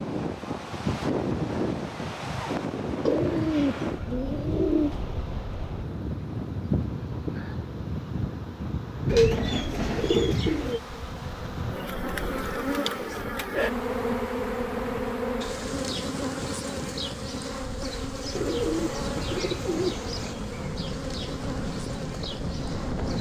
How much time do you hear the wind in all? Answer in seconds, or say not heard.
23 s.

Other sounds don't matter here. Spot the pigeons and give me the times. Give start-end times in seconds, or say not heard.
3.0-4.9, 9.1-10.8, 18.3-20.4.